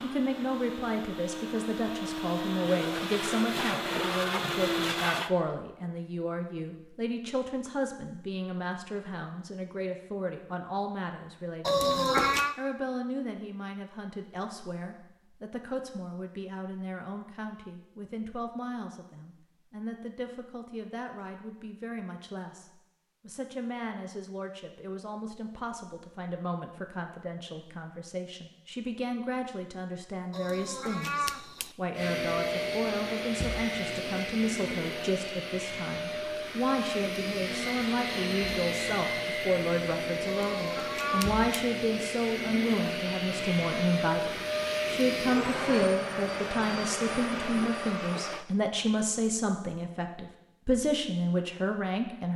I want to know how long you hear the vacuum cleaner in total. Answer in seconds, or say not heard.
22 s.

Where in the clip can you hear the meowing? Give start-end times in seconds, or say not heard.
11.6-12.6, 30.3-31.7, 40.2-41.5.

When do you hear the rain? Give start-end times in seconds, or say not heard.
not heard.